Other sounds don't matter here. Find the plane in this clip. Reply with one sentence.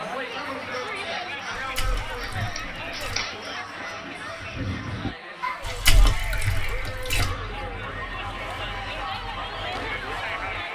You can't hear the plane here.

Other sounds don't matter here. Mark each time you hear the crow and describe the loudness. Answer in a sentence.
The crow can be heard from 0.2 to 10.7 s, getting louder then quieter.